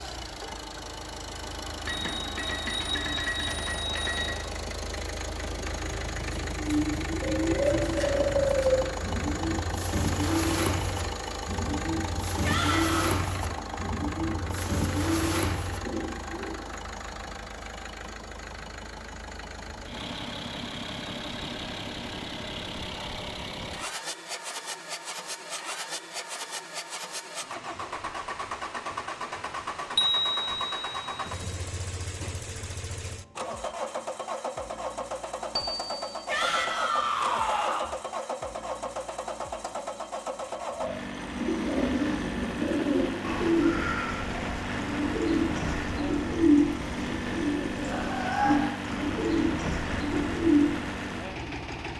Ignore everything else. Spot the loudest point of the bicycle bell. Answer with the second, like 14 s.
30 s.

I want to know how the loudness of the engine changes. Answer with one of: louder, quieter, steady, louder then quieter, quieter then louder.
steady.